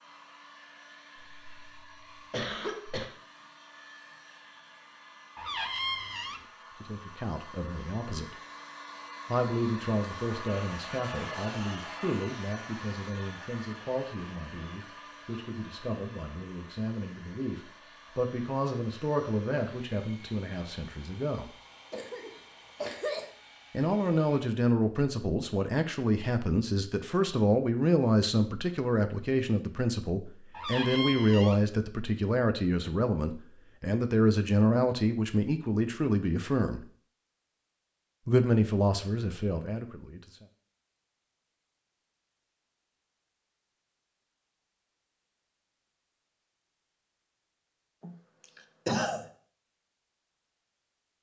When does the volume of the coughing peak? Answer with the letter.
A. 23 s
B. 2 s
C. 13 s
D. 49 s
D.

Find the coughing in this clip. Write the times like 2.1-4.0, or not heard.
1.4-3.0, 21.9-23.3, 48.0-49.2.